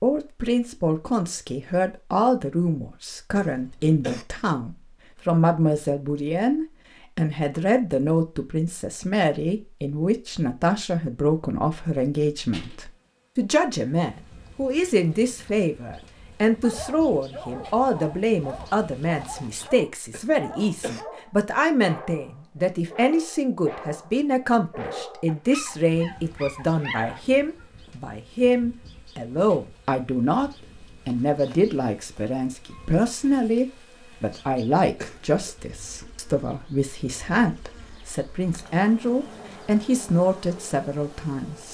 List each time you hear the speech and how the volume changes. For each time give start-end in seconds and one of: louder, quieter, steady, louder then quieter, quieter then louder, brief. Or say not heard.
0.0-41.7 steady.